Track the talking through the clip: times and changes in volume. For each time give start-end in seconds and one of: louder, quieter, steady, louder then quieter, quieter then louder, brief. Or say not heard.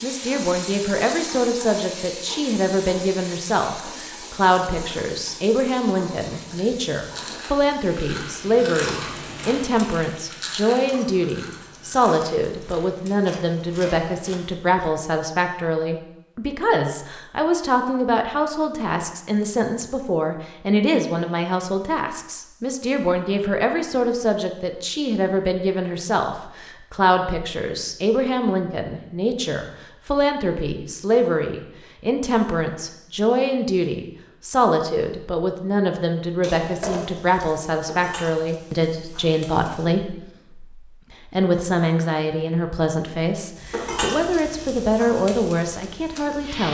0.0-46.6 steady.